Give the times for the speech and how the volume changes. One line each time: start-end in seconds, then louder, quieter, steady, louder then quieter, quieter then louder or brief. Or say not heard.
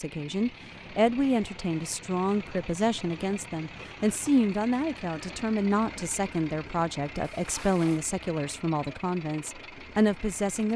0.0-10.7 steady.